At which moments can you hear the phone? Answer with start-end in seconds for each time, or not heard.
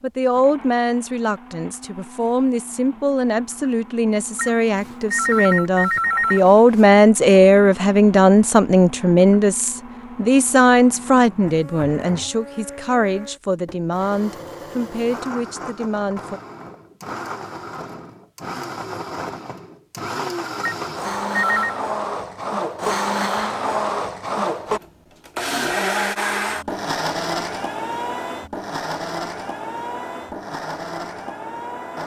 4.3-6.8, 20.6-21.8.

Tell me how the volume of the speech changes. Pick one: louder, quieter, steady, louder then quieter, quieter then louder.
louder then quieter.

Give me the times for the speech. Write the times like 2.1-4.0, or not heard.
0.0-16.4.